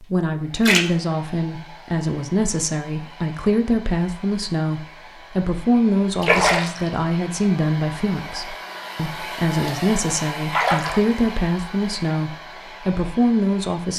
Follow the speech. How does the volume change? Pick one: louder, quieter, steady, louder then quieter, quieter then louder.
steady.